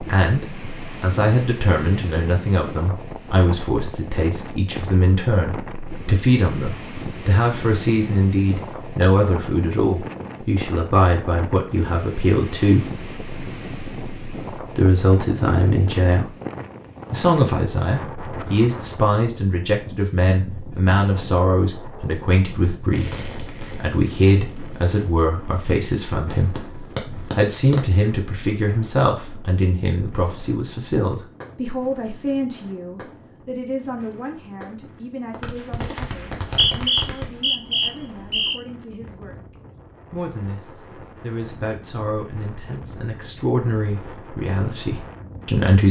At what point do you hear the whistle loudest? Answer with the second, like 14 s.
37 s.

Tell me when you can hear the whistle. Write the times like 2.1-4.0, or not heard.
36.4-38.6.